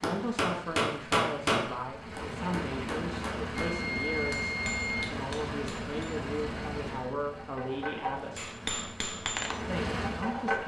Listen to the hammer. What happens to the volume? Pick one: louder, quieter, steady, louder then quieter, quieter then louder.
quieter then louder.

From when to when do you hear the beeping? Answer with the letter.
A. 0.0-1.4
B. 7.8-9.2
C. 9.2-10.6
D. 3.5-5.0
D.